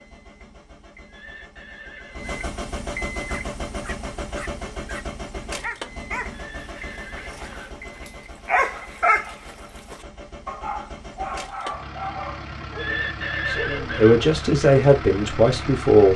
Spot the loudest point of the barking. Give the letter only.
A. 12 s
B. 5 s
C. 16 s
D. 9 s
D.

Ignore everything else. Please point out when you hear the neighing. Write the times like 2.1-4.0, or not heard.
1.1-2.4, 6.3-7.8, 12.7-14.2.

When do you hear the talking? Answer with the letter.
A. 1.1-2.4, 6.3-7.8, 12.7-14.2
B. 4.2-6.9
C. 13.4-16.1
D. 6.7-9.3
C.